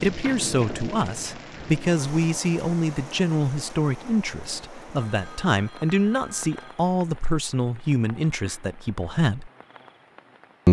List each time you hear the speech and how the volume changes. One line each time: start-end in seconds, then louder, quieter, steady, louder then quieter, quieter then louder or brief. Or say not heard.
0.0-9.5 steady.